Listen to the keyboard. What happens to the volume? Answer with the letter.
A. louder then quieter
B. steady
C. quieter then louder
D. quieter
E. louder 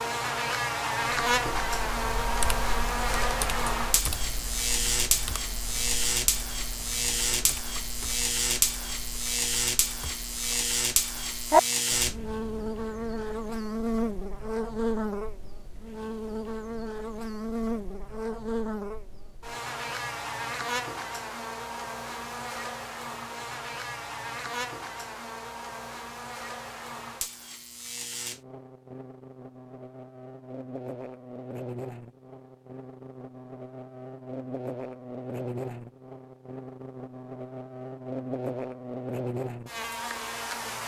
C.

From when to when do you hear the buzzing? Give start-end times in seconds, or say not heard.
0.0-40.8.